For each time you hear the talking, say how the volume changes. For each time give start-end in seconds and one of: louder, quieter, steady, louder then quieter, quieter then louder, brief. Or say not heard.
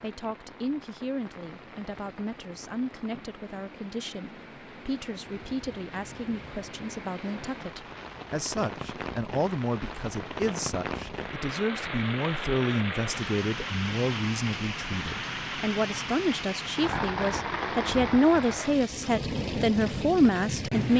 0.0-20.9 louder.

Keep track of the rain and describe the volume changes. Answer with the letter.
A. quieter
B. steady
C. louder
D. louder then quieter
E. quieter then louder
C.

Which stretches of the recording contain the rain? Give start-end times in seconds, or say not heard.
0.0-20.9.